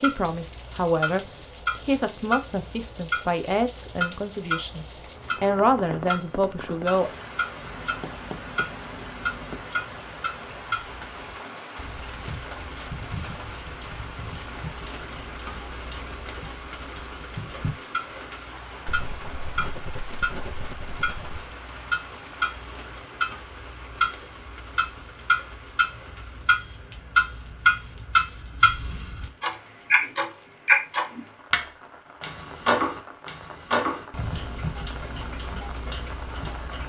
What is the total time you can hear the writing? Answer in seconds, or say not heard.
5 s.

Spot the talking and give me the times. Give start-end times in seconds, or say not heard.
0.0-1.2, 1.9-7.1.